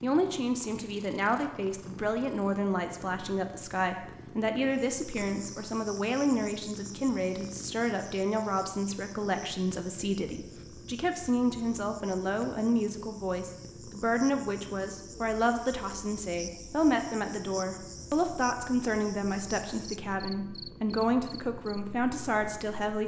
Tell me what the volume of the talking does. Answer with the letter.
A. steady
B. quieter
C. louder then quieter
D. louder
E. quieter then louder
A.